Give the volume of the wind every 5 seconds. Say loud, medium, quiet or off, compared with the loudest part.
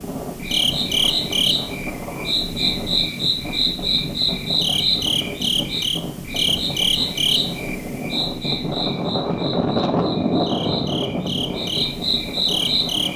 medium, loud, loud.